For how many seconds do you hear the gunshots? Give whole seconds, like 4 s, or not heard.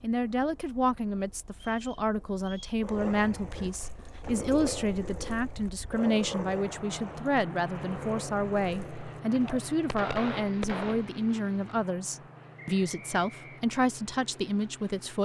2 s.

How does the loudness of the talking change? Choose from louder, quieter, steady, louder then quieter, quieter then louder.
steady.